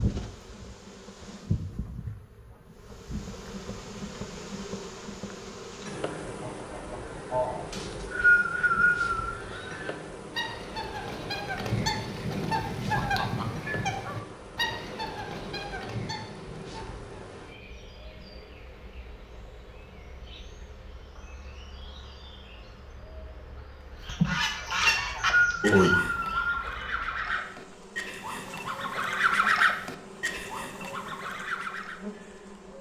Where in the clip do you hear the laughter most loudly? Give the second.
26 s.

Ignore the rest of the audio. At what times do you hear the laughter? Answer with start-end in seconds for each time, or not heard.
6.2-7.7, 24.1-26.0.